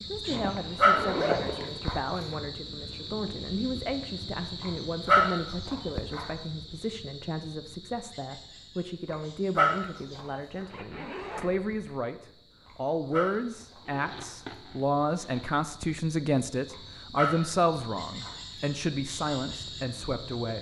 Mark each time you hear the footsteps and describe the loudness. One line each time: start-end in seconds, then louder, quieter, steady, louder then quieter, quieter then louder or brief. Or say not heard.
not heard.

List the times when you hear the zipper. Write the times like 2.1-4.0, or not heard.
0.3-1.8, 10.7-12.0, 13.8-15.6.